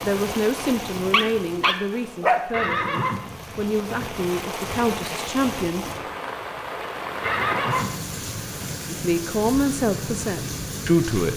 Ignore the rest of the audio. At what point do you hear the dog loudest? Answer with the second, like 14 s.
2 s.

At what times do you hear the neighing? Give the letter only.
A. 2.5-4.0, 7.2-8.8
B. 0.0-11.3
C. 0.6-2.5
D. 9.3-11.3
A.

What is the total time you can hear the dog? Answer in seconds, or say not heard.
2 s.